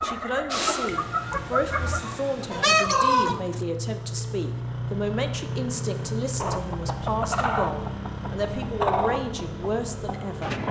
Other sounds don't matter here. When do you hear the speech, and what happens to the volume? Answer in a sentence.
You can hear the speech from 0.0 to 10.6 s, at a steady volume.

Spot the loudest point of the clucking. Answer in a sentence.
The loudest moment of the clucking is at 3 seconds.